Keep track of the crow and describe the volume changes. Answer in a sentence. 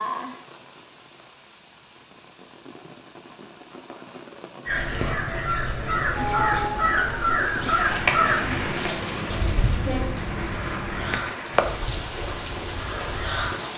The loudness of the crow goes down.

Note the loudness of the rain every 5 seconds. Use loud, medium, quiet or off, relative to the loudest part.
medium, loud, loud.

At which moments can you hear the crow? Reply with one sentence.
The crow can be heard from 4.7 to 13.6 s.